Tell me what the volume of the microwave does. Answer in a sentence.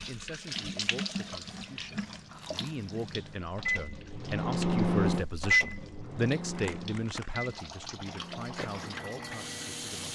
The loudness of the microwave goes up, then down.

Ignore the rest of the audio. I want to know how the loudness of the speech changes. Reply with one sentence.
The volume of the speech goes up, then down.